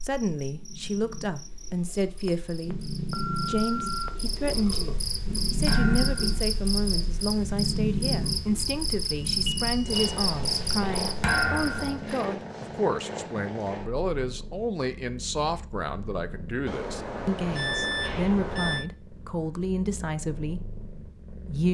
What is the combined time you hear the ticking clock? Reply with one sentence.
You can't hear the ticking clock here.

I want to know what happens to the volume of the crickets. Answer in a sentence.
The loudness of the crickets goes up.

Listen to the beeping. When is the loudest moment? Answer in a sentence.
The loudest moment of the beeping is at 18 seconds.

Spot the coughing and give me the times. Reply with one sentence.
You can't hear the coughing here.